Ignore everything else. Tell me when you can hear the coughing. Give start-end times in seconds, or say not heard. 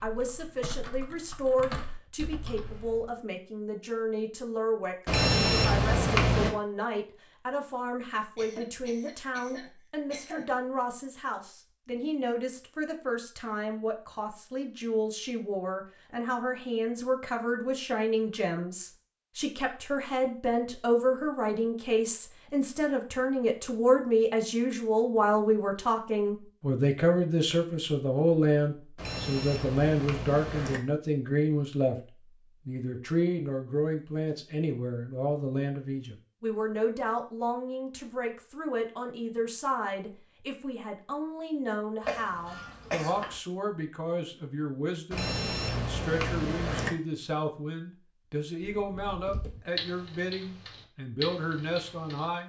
8.3-10.5, 42.0-43.4.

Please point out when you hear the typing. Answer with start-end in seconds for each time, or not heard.
0.0-3.1, 48.6-52.3.